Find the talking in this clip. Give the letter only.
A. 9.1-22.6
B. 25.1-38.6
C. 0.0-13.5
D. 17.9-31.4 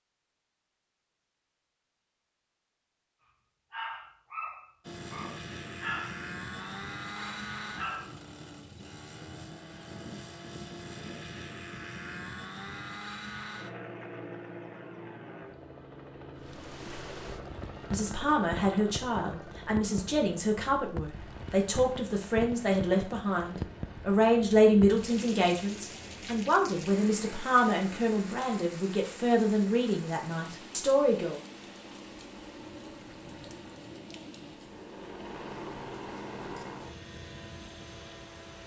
D.